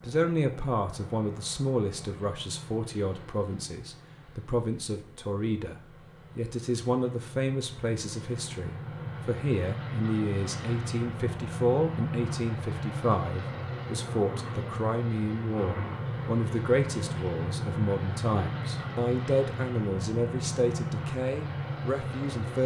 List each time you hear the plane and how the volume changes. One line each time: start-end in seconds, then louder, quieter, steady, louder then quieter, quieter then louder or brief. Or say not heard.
0.0-22.6 louder.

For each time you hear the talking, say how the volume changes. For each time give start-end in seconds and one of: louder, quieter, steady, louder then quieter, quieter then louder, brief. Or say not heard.
0.0-22.6 steady.